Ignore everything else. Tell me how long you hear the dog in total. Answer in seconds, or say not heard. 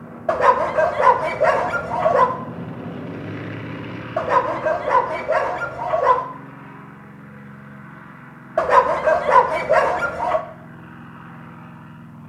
6 s.